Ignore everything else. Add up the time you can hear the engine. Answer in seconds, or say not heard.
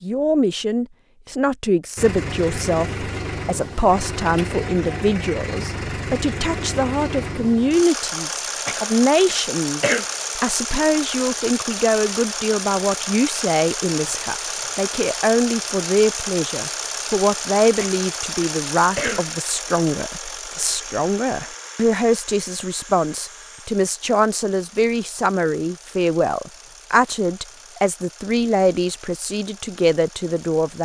29 s.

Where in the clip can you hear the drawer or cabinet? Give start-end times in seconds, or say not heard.
not heard.